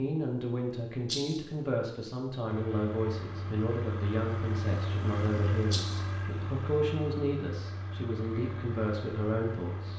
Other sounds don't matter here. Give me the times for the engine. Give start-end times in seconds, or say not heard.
2.5-9.9.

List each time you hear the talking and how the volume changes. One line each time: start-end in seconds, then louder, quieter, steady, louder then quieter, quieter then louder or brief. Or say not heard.
0.0-9.9 steady.